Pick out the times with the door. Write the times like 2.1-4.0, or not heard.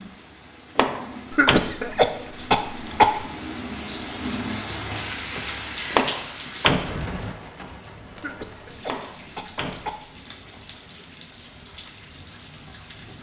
0.8-1.7, 5.9-7.1, 8.8-10.0.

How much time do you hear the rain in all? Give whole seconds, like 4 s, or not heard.
13 s.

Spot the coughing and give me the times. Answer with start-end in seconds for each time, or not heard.
1.3-3.2, 8.2-10.1.